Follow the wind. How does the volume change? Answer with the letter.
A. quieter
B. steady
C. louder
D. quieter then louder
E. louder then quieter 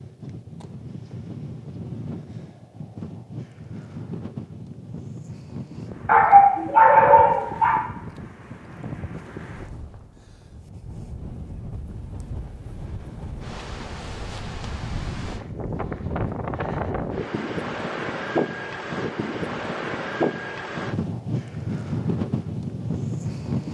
C.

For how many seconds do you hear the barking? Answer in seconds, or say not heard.
2 s.